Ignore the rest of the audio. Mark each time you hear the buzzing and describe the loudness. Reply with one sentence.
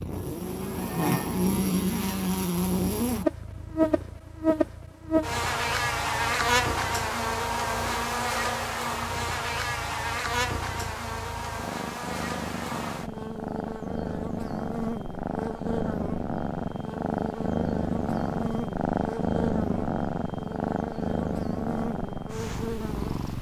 You can hear the buzzing from 0.0 to 23.1 s, getting quieter.